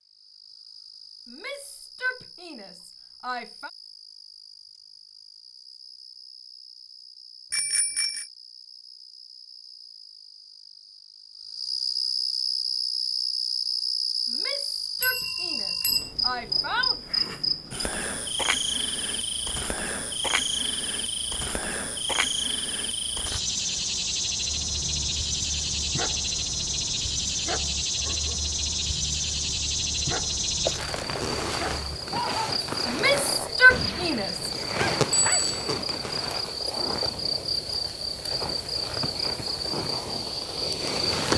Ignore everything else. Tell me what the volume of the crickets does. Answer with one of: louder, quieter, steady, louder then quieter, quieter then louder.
louder.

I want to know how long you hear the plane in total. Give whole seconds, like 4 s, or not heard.
not heard.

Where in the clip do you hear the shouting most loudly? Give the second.
34 s.